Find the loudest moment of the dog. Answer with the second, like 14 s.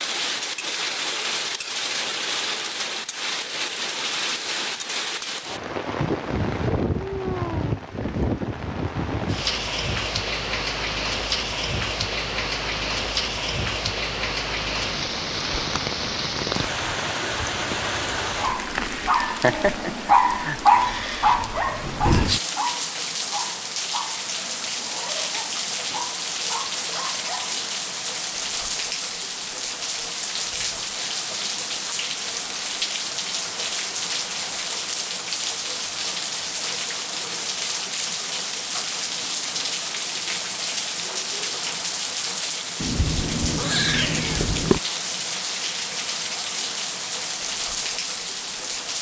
21 s.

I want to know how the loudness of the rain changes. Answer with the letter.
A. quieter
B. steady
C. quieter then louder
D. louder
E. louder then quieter
B.